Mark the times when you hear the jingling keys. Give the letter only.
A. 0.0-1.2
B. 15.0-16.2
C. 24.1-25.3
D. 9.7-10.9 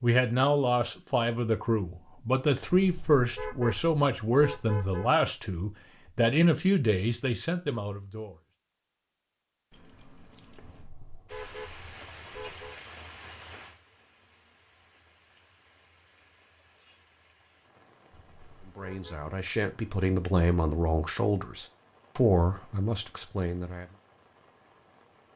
D.